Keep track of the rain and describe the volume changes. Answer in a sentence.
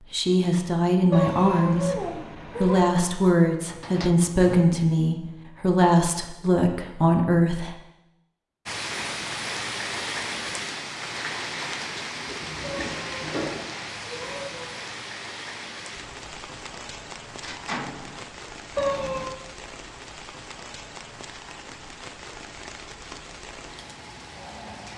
The loudness of the rain goes down.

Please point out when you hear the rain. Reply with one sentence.
The rain can be heard from 8.7 to 24.9 s.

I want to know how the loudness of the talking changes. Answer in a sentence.
The volume of the talking stays about the same.